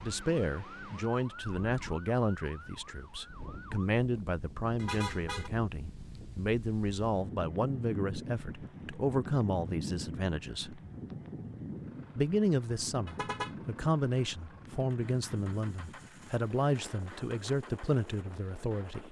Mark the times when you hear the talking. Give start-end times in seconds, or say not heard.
0.0-10.8, 12.2-19.0.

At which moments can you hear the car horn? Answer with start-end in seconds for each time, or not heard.
4.8-5.5, 13.1-13.6.